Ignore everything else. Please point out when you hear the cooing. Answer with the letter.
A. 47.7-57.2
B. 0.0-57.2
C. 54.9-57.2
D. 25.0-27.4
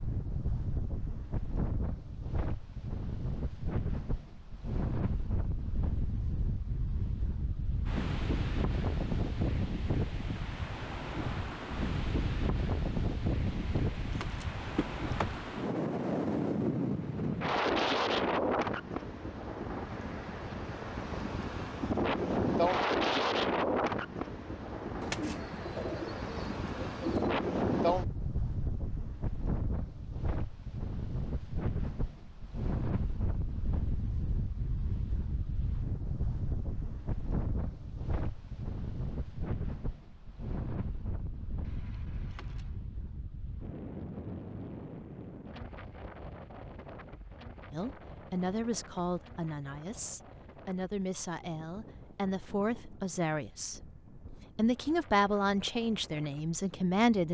D.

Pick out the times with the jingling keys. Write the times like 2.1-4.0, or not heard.
13.4-15.4, 41.6-42.8.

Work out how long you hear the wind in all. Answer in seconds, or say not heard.
57 s.